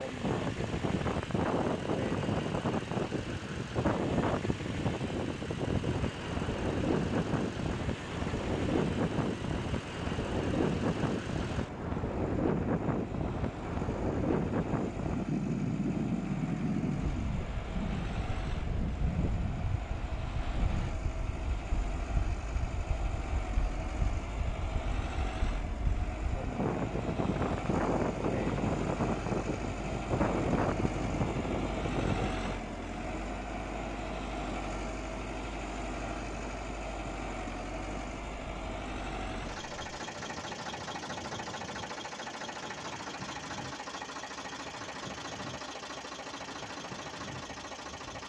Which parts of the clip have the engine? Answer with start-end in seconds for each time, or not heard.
0.0-48.2.